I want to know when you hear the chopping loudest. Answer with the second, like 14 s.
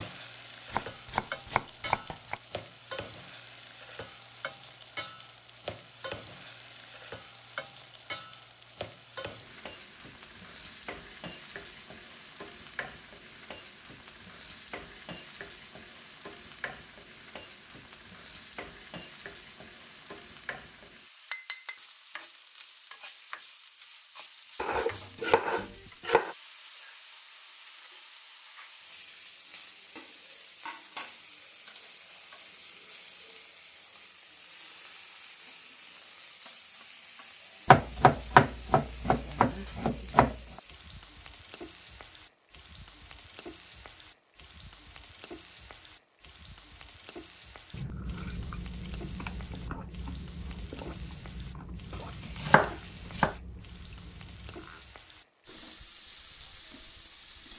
38 s.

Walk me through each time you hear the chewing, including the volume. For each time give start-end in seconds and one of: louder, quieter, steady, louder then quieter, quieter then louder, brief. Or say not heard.
47.7-54.9 quieter.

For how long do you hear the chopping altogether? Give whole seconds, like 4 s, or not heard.
7 s.